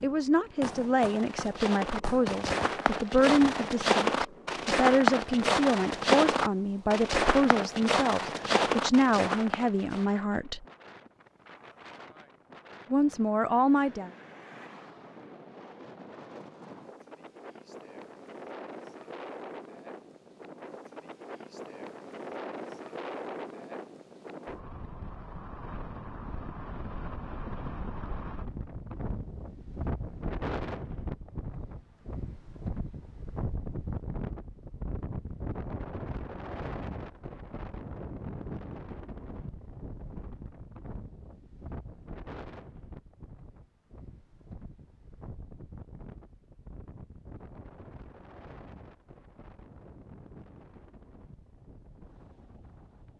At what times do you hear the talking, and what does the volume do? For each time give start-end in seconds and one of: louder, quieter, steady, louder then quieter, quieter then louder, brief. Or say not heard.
0.0-10.7 steady
12.9-14.1 brief.